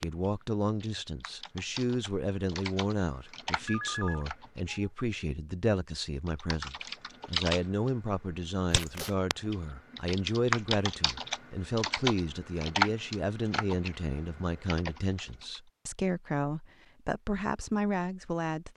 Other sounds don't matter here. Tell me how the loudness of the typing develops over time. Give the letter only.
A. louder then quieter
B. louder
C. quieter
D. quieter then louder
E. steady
B.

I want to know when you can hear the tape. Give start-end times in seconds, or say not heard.
8.7-9.2.